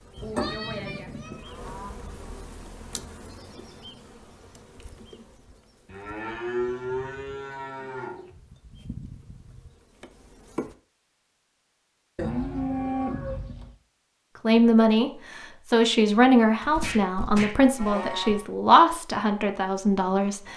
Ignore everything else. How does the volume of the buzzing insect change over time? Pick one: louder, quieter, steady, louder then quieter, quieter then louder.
quieter then louder.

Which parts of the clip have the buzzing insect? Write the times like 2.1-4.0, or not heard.
0.0-10.8.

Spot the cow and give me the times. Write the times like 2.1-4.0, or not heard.
0.1-1.9, 5.8-8.3, 12.2-13.7, 16.6-18.4.